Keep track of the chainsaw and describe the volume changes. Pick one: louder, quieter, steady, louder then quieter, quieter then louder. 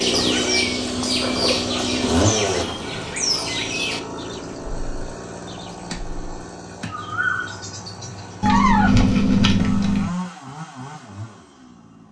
quieter then louder.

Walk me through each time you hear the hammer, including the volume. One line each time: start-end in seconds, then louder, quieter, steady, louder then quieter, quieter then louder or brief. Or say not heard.
not heard.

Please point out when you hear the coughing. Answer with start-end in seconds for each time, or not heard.
not heard.